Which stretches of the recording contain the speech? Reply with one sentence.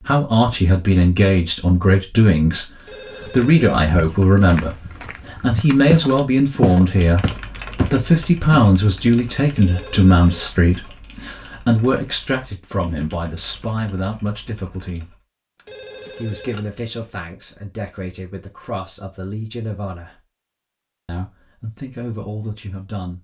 You can hear the speech from 0.0 to 15.2 s, from 16.1 to 20.2 s and from 21.1 to 23.1 s.